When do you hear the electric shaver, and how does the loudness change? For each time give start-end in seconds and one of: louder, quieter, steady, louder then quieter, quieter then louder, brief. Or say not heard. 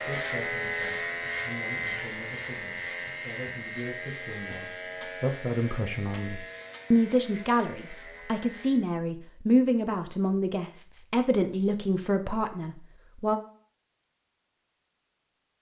0.0-8.9 quieter.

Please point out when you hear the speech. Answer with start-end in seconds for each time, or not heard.
0.0-13.4.